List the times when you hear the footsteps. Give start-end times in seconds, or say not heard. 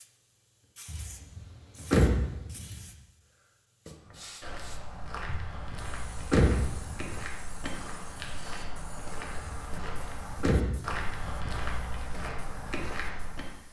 4.0-13.6.